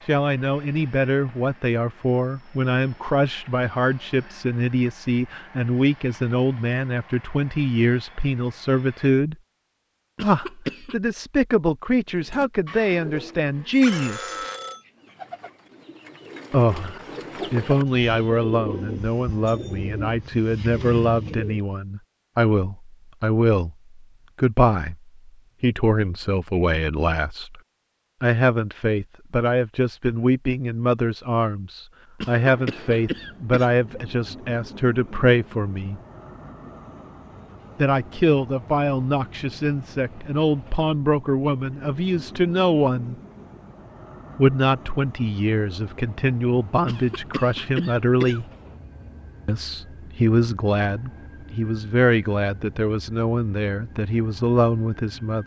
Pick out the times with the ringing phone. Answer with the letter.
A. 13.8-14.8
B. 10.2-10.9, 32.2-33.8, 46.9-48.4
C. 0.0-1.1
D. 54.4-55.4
A.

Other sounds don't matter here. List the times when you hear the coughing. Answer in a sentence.
You can hear the coughing from 10.2 to 10.9 s, from 32.2 to 33.8 s and from 46.9 to 48.4 s.